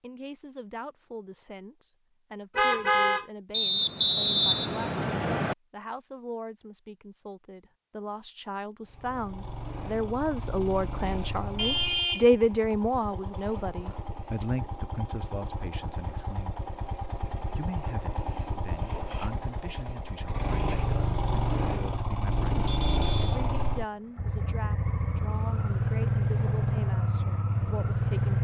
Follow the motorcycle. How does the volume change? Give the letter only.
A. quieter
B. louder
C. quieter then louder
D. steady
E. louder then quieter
B.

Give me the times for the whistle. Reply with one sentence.
The whistle can be heard from 3.5 to 5.5 s.